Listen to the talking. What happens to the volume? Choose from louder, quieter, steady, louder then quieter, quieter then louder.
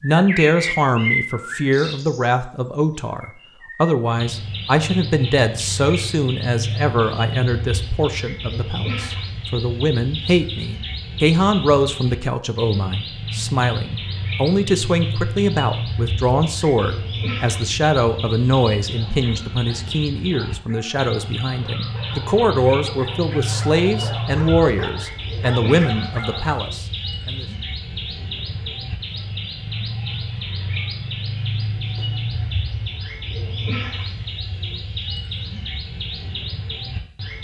steady.